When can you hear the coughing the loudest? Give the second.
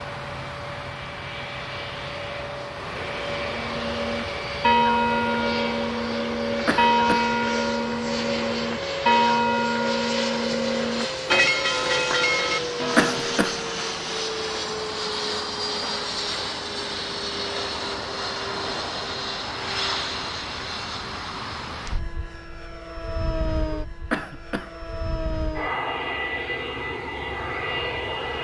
13 s.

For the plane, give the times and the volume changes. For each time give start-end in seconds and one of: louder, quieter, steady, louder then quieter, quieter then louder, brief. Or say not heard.
0.0-28.3 steady.